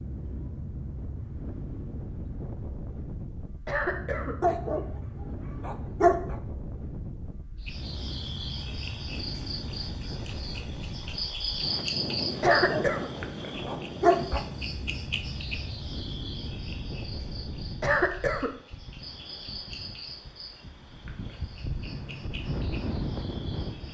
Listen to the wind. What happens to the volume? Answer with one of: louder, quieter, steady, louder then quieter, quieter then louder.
steady.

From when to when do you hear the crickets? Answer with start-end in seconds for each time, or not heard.
7.6-23.8.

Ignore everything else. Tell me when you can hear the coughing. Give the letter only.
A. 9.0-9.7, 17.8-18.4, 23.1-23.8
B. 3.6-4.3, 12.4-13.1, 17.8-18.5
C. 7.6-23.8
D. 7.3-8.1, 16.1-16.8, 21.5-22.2
B.